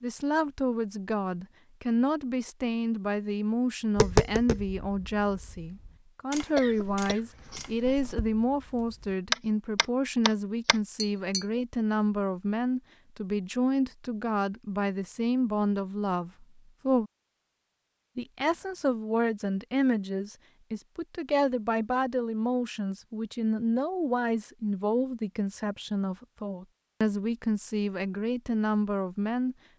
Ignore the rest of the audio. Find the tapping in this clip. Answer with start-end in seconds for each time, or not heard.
4.0-11.4.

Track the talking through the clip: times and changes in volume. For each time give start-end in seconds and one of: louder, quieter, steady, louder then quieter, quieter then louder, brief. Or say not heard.
0.0-17.1 steady
18.1-29.6 steady.